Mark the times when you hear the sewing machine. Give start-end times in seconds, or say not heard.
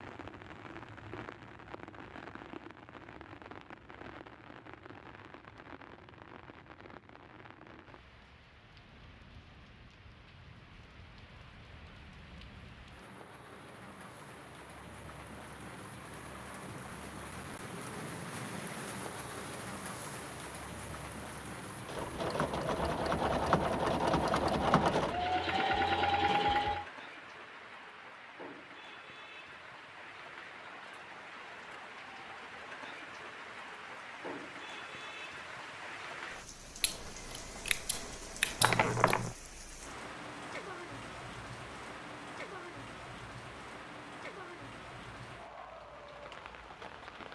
21.8-26.9.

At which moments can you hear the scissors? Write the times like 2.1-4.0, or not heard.
36.8-38.9.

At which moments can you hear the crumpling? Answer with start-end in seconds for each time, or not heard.
38.6-39.4.